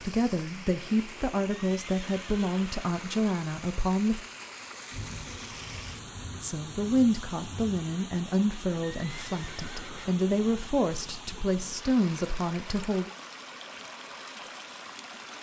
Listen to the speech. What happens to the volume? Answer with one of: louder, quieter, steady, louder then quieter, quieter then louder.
steady.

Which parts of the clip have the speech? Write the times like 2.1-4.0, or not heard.
0.0-4.2, 6.4-13.1.